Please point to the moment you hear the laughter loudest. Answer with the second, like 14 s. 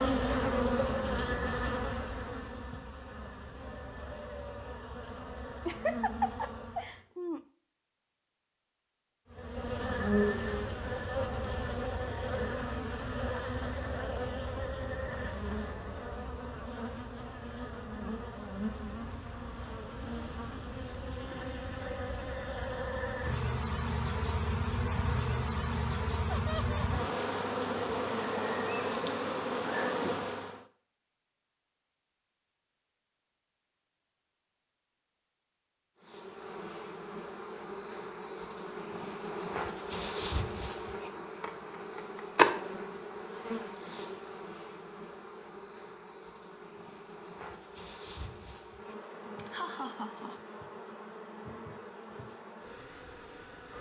6 s.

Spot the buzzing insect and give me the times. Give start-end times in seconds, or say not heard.
0.0-7.0, 9.3-30.6, 36.0-53.7.